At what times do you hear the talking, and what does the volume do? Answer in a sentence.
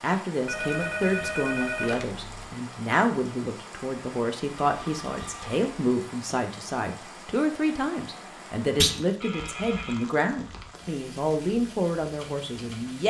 You can hear the talking from 0.0 to 13.0 s, at a steady volume.